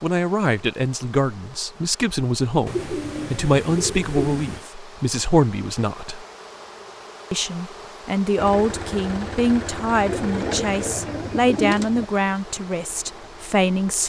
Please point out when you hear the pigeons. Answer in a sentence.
The pigeons can be heard from 2.6 to 4.7 s and from 10.1 to 12.1 s.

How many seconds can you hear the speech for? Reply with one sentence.
You can hear the speech for 13 seconds altogether.